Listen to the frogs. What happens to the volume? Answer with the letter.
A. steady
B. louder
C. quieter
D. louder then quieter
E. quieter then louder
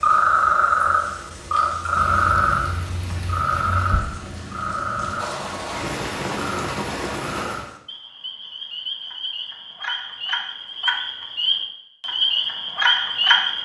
E.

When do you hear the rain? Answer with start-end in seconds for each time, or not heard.
0.0-7.7.